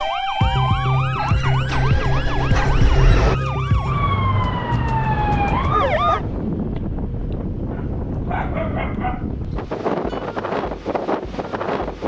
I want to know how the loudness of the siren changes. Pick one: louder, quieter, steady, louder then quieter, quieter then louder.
steady.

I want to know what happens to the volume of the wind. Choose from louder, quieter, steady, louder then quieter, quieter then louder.
steady.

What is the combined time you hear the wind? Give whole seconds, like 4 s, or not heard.
7 s.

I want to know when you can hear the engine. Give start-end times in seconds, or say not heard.
0.0-3.4.